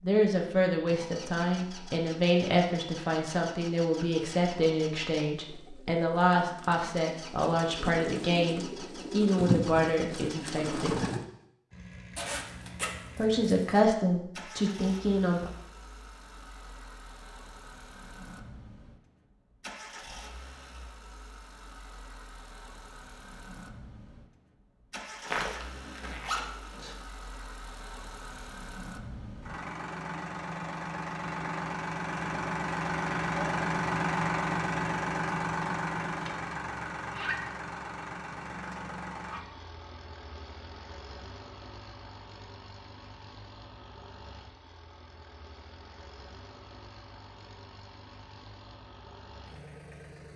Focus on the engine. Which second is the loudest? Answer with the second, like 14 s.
34 s.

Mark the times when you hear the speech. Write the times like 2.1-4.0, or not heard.
0.0-11.0, 13.2-15.5.